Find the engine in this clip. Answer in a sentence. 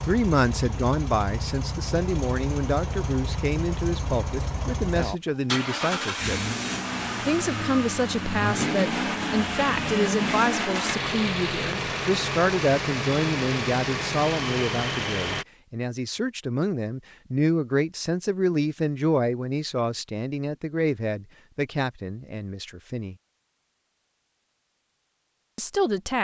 You can hear the engine from 0.0 to 15.4 s.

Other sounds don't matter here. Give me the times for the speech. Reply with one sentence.
The speech can be heard from 0.1 to 6.4 s, from 7.2 to 23.1 s and from 25.6 to 26.1 s.